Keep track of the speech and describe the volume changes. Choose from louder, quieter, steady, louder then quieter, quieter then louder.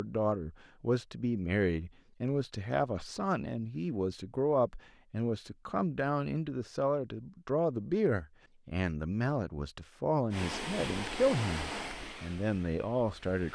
steady.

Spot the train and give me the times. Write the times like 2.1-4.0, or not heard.
10.3-13.5.